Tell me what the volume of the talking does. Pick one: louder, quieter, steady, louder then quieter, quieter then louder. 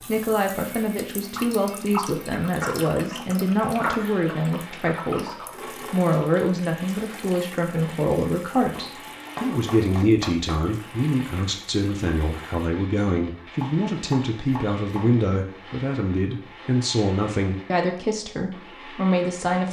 steady.